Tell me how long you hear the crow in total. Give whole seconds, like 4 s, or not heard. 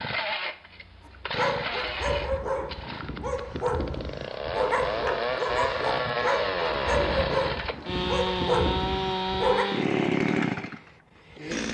not heard.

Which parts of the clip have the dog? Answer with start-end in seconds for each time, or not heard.
1.4-9.7.